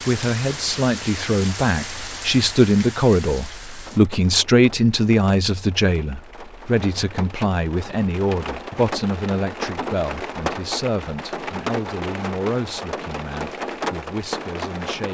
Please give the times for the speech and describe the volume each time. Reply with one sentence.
You can hear the speech from 0.0 to 15.0 s, getting quieter.